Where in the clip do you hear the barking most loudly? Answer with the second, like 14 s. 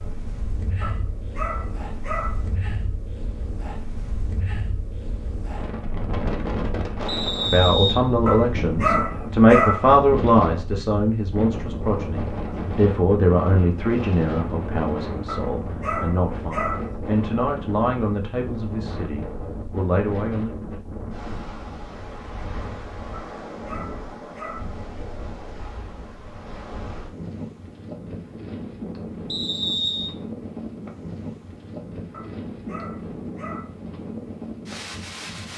10 s.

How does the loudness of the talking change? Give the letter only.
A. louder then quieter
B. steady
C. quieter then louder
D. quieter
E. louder
D.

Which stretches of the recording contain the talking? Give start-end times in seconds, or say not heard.
7.5-20.5.